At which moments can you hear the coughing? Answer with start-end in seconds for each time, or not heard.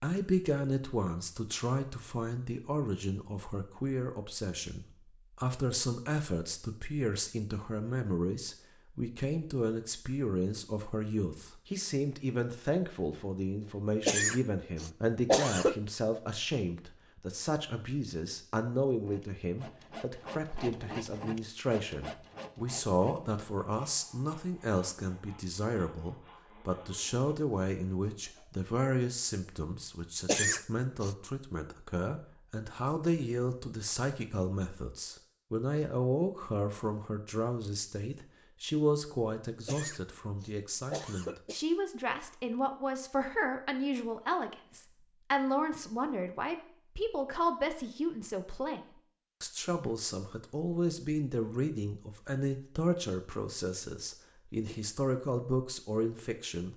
14.1-15.8, 30.2-31.1, 39.6-41.6.